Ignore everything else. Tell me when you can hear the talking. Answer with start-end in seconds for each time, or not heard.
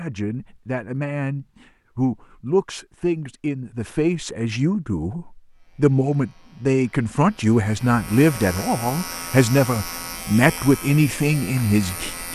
0.0-12.3.